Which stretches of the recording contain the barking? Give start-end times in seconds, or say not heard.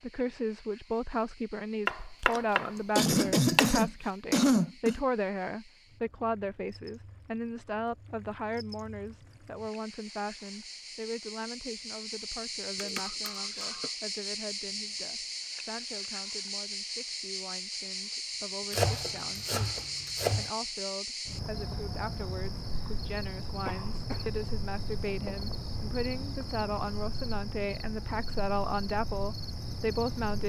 not heard.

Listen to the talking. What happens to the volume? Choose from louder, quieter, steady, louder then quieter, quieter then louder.
quieter then louder.